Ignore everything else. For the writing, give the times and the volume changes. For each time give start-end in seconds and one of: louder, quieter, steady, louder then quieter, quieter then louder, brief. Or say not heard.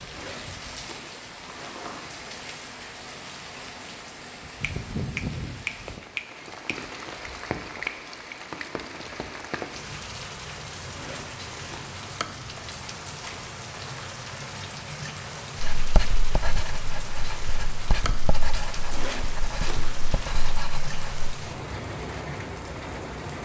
15.6-21.3 steady.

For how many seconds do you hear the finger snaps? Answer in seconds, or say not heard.
2 s.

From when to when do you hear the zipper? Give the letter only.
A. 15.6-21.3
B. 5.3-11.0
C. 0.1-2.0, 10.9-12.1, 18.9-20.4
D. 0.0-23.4
C.